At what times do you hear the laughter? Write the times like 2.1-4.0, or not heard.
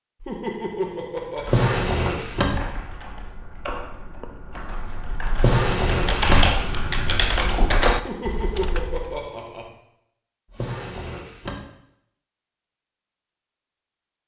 0.2-1.6, 8.0-9.7.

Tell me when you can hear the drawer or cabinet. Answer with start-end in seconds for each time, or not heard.
1.4-2.6, 5.3-6.5, 10.5-11.7.